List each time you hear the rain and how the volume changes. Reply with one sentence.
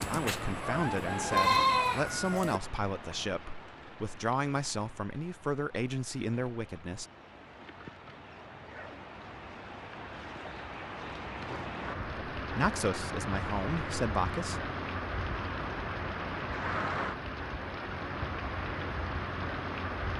The rain can be heard from 0.0 to 20.1 s, getting quieter then louder.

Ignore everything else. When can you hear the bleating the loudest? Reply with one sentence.
The loudest moment of the bleating is at 2 seconds.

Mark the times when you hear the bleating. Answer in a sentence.
You can hear the bleating from 0.0 to 2.6 s.